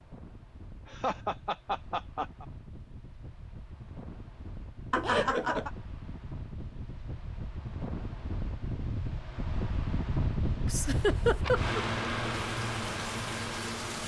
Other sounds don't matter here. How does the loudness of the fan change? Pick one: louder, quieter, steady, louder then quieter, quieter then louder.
louder.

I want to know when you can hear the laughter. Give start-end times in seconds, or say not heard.
0.8-2.5, 4.9-5.7, 10.7-11.8.